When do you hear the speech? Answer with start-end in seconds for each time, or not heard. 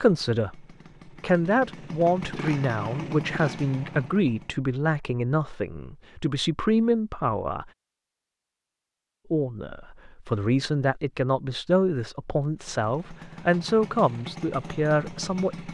0.0-7.7, 9.3-15.7.